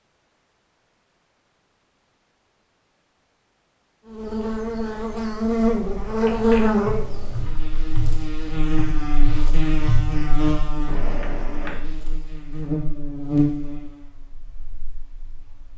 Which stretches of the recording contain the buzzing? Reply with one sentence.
The buzzing can be heard from 4.0 to 15.7 s.